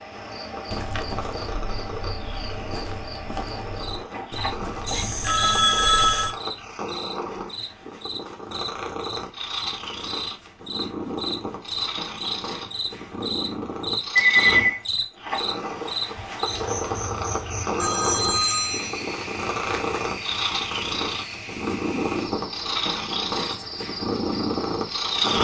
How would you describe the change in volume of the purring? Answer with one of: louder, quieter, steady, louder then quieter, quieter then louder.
louder.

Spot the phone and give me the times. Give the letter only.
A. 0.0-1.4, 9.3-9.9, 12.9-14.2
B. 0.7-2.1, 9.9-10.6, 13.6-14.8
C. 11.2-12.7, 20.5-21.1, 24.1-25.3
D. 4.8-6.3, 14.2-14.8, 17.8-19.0
D.